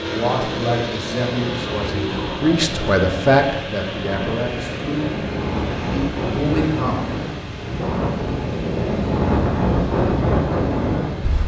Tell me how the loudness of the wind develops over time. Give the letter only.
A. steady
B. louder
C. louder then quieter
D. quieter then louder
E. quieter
B.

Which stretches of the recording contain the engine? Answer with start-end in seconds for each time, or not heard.
0.0-11.4.